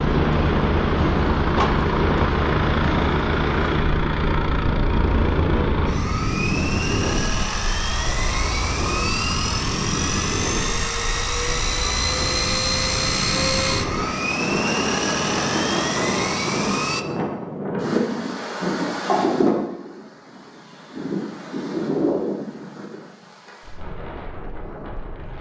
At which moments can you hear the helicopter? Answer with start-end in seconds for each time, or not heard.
0.0-17.1.